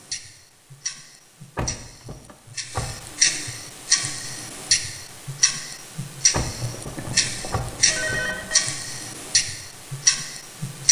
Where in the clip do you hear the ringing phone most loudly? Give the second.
8 s.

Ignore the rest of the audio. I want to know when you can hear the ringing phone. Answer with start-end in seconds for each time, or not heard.
6.5-8.6.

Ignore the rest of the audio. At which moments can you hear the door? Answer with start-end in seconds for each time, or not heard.
1.6-3.0, 6.3-8.3.